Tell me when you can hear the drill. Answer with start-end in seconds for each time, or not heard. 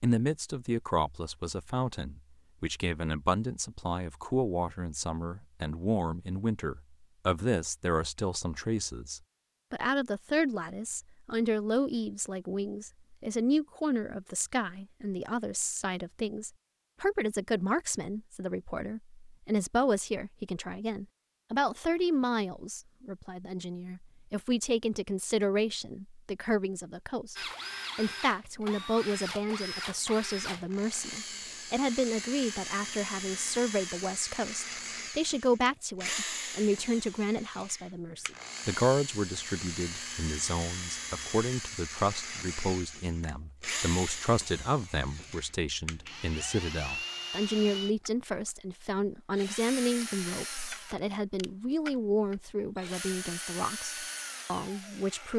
27.4-55.3.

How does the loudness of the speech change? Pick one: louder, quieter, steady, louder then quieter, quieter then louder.
steady.